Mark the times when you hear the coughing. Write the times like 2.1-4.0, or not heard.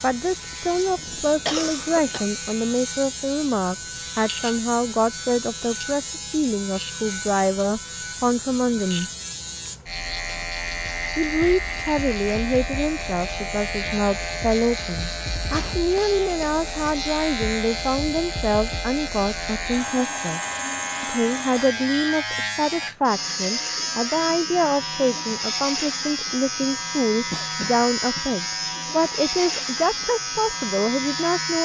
0.9-2.3, 15.5-16.6, 27.3-28.3.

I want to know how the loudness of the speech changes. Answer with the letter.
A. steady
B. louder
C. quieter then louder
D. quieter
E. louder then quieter
A.